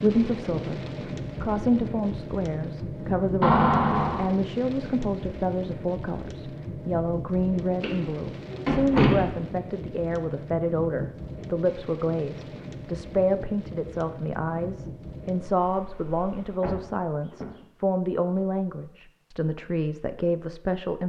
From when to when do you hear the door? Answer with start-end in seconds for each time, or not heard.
3.4-4.3, 7.8-9.3, 16.6-17.6.